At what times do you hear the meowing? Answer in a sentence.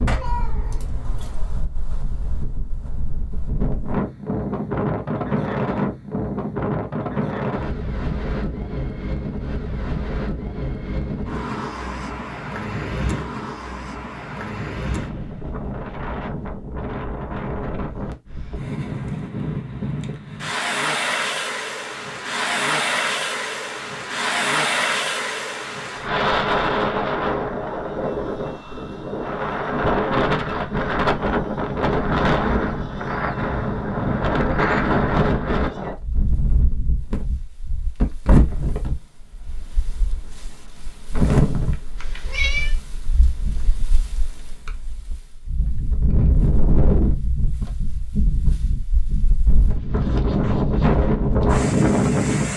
The meowing can be heard from 0.1 to 1.4 s and from 42.0 to 42.8 s.